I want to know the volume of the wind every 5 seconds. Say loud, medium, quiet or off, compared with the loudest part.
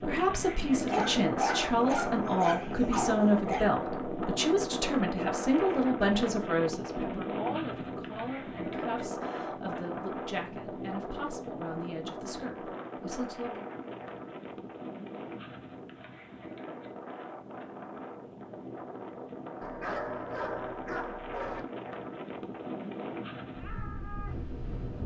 loud, loud, medium, medium, medium.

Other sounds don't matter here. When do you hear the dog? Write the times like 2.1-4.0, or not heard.
0.9-3.6, 19.6-21.6.